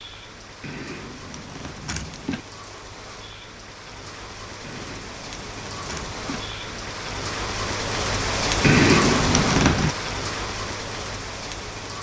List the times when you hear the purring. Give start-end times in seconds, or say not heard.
not heard.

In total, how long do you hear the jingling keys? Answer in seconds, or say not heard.
5 s.